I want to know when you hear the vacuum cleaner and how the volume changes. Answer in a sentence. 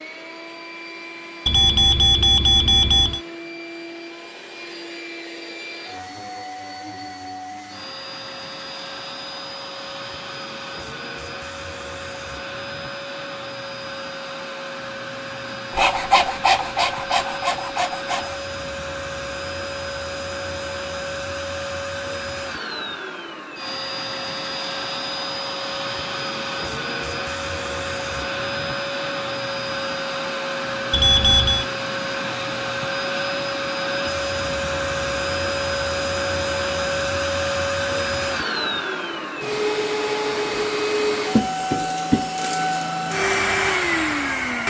You can hear the vacuum cleaner from 0.0 to 44.6 s, getting louder.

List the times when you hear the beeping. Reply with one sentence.
You can hear the beeping from 1.4 to 3.2 s and from 30.9 to 31.6 s.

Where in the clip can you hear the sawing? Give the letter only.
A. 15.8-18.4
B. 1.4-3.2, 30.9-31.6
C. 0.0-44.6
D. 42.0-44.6
A.